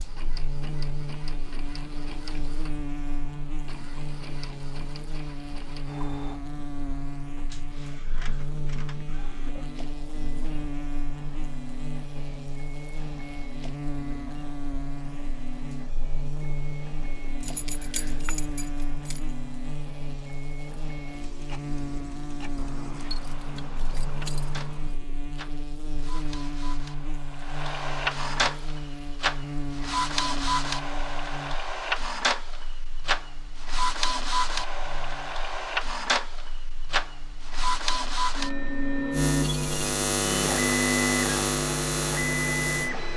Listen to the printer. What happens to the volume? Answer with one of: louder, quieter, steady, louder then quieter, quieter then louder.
louder.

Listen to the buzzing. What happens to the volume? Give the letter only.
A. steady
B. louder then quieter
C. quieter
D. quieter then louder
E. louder
E.